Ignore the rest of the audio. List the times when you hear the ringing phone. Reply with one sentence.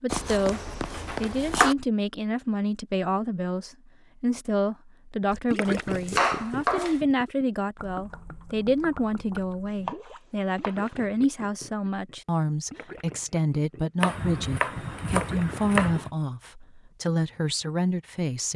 You can hear the ringing phone from 0.1 to 1.8 s.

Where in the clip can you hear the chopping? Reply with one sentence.
The chopping can be heard from 0.1 to 1.8 s, from 5.7 to 7.0 s, from 9.8 to 11.0 s and from 14.0 to 16.1 s.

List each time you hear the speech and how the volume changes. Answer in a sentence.
You can hear the speech from 0.0 to 18.5 s, at a steady volume.